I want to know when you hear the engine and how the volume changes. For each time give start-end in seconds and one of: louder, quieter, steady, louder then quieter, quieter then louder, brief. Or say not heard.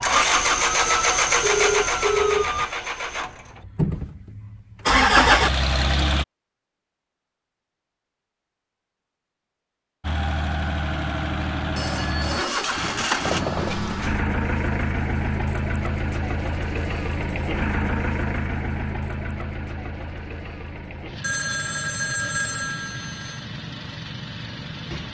0.0-6.2 quieter then louder
10.0-25.0 quieter.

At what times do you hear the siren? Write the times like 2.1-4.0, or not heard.
0.1-2.7.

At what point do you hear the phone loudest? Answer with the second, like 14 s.
2 s.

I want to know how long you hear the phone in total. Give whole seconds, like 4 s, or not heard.
6 s.